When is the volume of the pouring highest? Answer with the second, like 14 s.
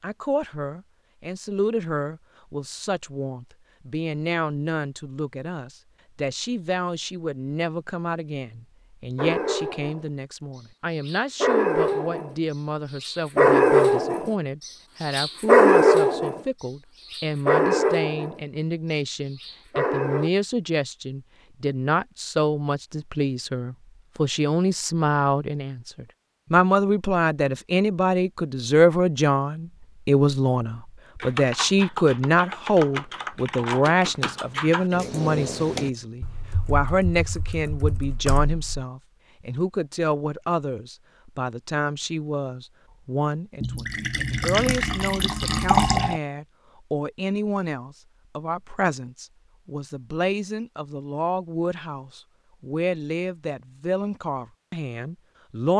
46 s.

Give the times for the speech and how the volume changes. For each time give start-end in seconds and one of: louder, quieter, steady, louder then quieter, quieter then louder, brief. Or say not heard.
0.0-55.7 louder then quieter.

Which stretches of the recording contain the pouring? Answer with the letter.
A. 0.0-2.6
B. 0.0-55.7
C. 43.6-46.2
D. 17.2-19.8
C.